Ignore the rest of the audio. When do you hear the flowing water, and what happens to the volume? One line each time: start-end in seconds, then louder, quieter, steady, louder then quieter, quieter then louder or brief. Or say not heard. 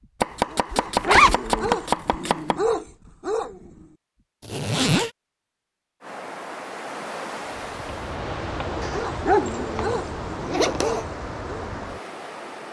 6.0-12.6 steady.